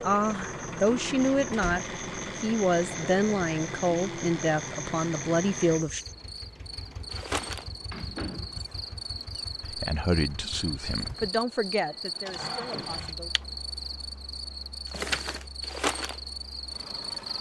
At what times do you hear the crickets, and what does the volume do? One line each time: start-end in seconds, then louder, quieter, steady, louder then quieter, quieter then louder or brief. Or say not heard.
0.0-17.3 louder.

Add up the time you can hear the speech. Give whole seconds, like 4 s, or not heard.
10 s.